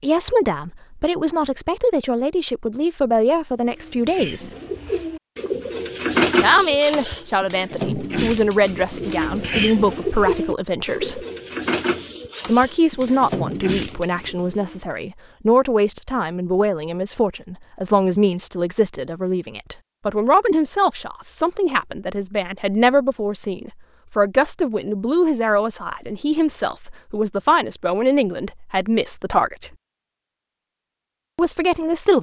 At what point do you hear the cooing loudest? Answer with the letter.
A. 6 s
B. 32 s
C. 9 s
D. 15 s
A.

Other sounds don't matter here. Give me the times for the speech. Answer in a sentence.
You can hear the speech from 0.0 to 4.5 s, from 6.4 to 11.2 s, from 12.4 to 29.7 s and from 31.4 to 32.1 s.